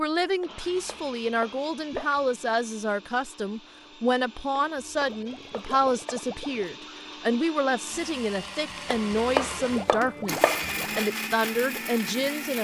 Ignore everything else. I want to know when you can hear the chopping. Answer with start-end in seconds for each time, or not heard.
0.4-2.5, 4.8-6.3, 8.9-10.9.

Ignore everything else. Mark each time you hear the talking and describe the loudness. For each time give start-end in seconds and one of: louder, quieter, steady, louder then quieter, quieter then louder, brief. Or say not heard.
0.0-12.5 steady.